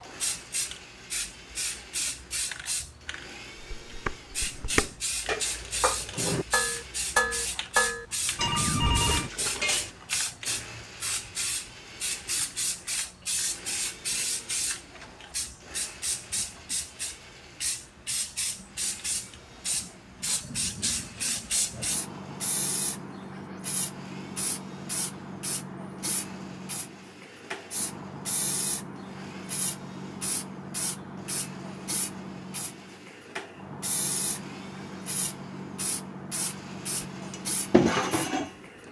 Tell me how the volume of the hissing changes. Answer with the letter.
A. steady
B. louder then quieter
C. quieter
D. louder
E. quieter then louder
A.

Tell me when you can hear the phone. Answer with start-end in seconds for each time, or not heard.
8.3-9.3.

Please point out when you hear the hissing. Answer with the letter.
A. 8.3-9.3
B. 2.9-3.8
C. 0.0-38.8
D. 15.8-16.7
C.